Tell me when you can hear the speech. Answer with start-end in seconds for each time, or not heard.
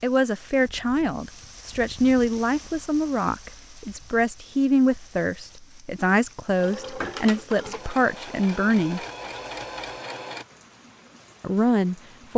0.0-9.0, 11.4-12.3.